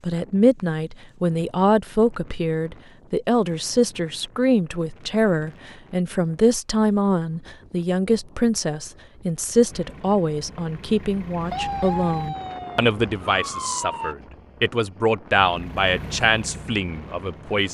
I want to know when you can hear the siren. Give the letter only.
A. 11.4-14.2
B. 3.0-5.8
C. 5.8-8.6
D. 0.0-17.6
A.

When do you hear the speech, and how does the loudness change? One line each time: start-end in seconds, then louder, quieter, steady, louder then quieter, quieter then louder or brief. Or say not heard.
0.0-17.6 steady.